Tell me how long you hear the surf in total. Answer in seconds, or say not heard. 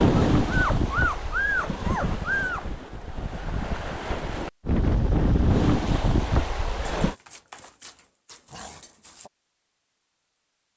7 s.